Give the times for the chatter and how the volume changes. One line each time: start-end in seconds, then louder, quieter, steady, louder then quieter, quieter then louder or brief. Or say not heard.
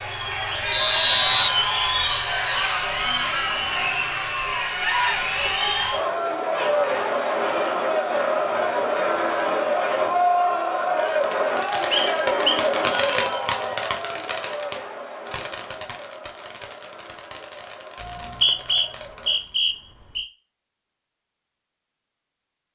0.0-19.4 quieter.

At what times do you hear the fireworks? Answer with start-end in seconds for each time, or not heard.
10.8-19.6.